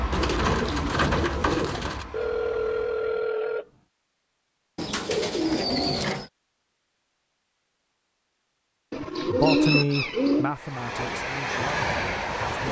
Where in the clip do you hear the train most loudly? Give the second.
12 s.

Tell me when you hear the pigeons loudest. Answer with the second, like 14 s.
10 s.